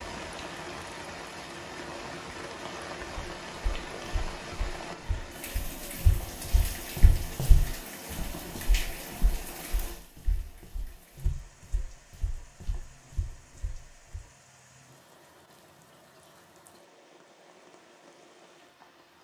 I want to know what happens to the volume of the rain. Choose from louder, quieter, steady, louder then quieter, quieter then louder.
quieter.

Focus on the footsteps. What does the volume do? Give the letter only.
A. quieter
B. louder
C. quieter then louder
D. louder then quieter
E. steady
D.